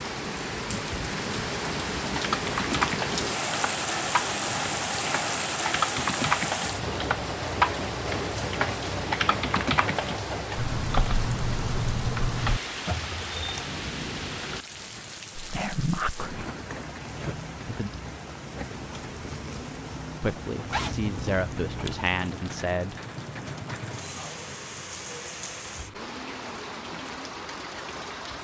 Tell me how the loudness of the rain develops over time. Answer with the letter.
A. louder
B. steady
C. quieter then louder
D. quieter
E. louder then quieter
D.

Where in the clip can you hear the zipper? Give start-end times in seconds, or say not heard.
20.7-21.9.